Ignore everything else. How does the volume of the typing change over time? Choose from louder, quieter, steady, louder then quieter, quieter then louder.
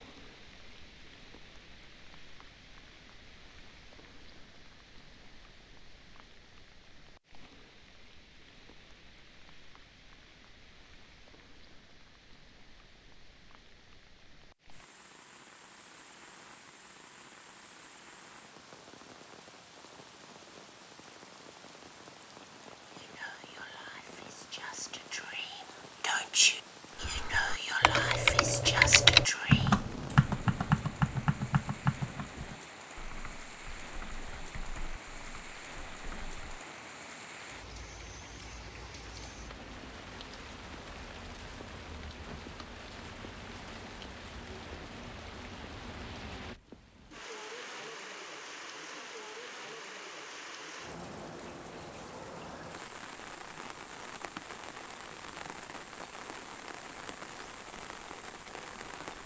quieter.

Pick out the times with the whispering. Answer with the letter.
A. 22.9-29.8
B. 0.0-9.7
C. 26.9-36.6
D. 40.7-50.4
A.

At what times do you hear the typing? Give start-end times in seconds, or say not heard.
26.9-36.6.